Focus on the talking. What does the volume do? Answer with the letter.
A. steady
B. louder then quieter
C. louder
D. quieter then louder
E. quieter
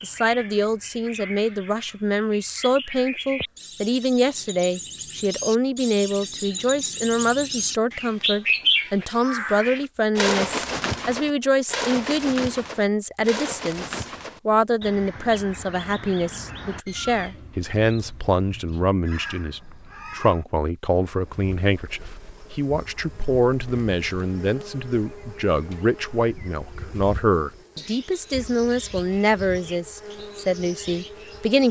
A.